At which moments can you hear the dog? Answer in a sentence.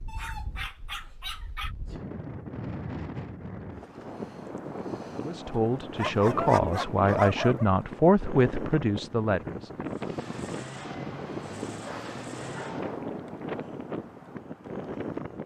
You can hear the dog from 0.1 to 1.8 s, from 6.0 to 7.7 s and from 11.7 to 12.8 s.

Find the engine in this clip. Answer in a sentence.
You can hear the engine from 9.8 to 13.1 s.